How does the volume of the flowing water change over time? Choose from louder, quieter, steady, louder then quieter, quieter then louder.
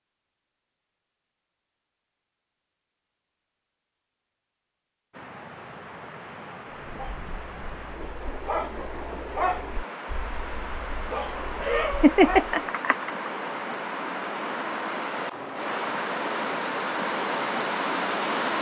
louder.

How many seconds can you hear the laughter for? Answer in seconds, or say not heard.
2 s.